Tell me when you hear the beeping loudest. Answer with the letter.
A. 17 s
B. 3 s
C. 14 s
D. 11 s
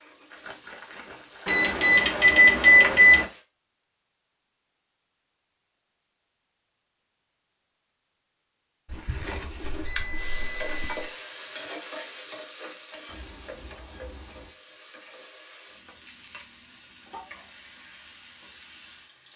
B.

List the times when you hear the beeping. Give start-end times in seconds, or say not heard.
1.4-3.2, 9.6-11.1, 13.1-14.5.